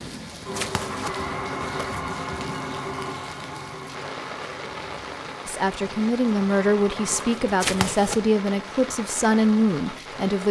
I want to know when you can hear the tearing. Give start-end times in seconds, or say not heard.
0.1-2.0, 7.1-8.2.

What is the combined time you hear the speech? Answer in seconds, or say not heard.
5 s.